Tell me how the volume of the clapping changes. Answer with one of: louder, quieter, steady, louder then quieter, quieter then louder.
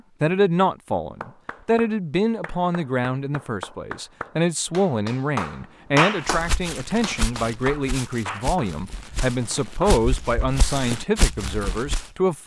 louder then quieter.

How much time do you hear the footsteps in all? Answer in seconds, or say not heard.
6 s.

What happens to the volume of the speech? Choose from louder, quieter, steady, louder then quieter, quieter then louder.
steady.